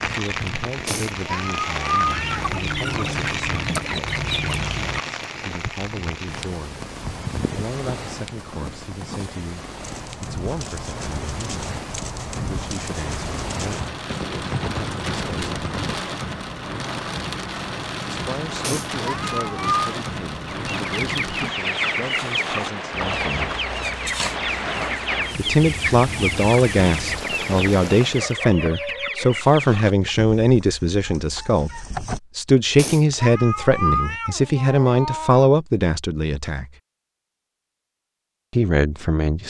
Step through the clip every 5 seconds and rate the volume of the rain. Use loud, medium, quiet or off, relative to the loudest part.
loud, medium, medium, loud, loud, loud, off, off.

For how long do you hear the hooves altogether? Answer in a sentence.
You can hear the hooves for 9 seconds altogether.